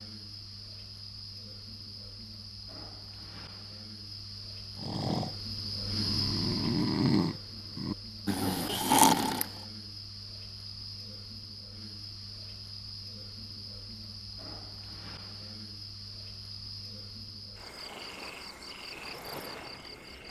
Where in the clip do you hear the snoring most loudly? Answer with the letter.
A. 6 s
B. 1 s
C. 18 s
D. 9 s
D.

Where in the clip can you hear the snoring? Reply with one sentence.
You can hear the snoring from 4.8 to 9.5 s.